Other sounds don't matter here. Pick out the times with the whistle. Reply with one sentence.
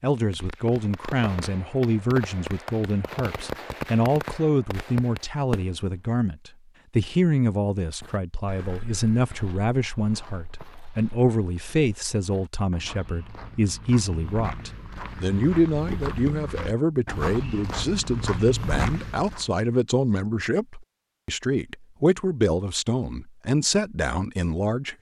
The whistle can't be heard in this clip.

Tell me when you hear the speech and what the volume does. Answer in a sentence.
The speech can be heard from 0.0 to 24.9 s, at a steady volume.